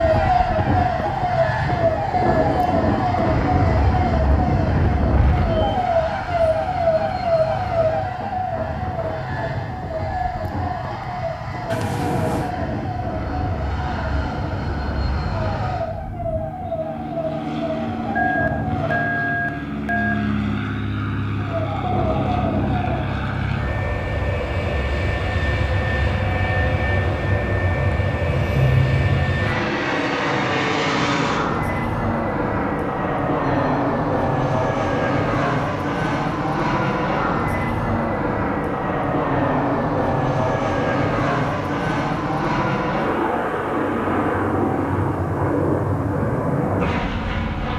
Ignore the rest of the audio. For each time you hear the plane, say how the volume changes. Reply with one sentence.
You can hear the plane from 0.0 to 47.7 s, getting louder.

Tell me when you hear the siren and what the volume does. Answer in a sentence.
You can hear the siren from 0.0 to 19.1 s, getting quieter; and briefly from 21.4 to 23.1 s.